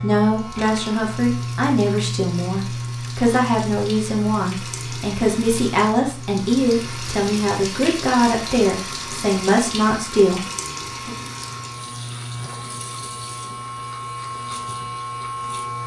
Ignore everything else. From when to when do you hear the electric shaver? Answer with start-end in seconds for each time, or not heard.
0.0-15.8.